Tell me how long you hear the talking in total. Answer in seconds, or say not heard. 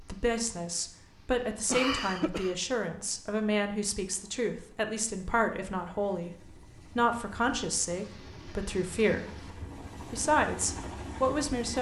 11 s.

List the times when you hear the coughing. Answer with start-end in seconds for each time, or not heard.
1.6-2.5.